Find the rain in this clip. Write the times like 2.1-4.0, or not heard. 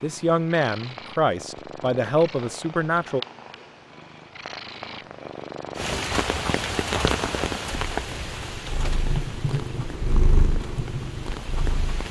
5.8-12.0.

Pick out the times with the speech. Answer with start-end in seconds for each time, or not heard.
0.0-3.2.